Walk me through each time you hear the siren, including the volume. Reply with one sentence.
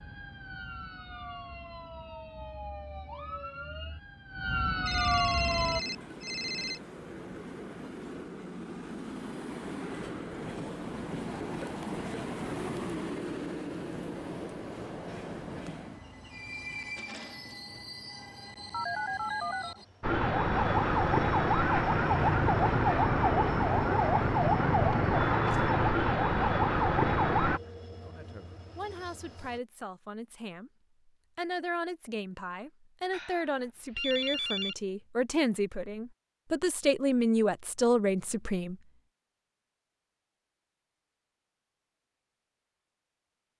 You can hear the siren from 0.0 to 5.8 s, getting louder; and from 20.0 to 27.6 s, at a steady volume.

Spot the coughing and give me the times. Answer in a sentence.
The coughing can't be heard in this clip.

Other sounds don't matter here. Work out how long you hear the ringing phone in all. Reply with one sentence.
The ringing phone can be heard for 5 seconds in total.